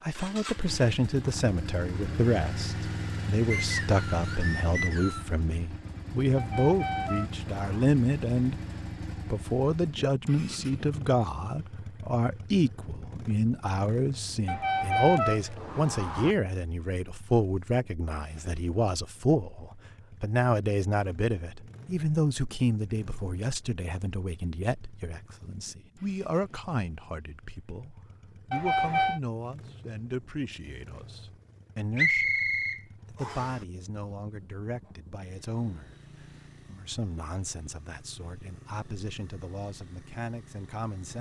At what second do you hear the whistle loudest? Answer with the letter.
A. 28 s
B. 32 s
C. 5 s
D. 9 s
B.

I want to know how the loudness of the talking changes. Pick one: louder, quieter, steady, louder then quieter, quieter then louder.
quieter.